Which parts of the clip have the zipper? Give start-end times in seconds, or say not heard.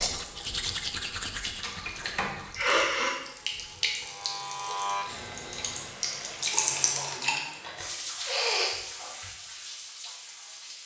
not heard.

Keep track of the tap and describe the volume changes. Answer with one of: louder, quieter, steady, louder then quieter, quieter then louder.
louder then quieter.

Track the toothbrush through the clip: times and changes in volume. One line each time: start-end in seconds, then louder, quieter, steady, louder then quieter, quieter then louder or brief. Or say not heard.
0.0-4.2 quieter.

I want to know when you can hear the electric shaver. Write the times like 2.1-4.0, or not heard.
4.0-6.0.